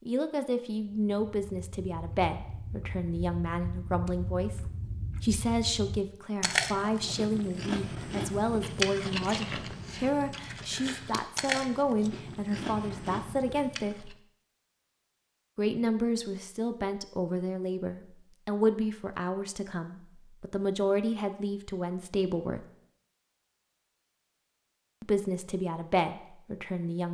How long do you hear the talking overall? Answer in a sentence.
You can hear the talking for 23 seconds altogether.